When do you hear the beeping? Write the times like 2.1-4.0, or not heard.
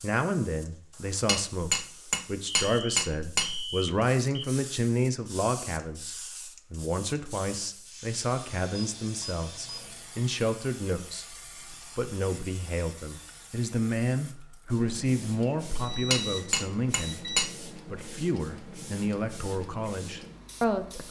2.6-4.5, 8.7-10.1, 15.8-17.5.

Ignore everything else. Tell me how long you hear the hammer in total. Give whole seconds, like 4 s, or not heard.
4 s.